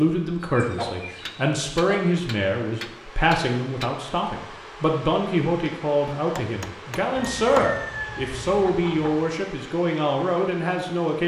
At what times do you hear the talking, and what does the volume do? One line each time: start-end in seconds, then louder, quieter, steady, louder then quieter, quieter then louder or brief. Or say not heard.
0.0-11.2 steady.